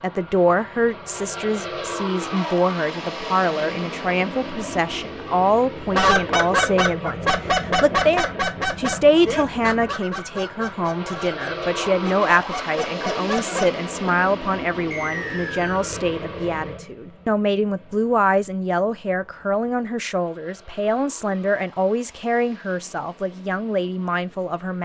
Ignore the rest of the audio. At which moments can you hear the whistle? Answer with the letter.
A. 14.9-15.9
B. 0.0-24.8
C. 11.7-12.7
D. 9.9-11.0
A.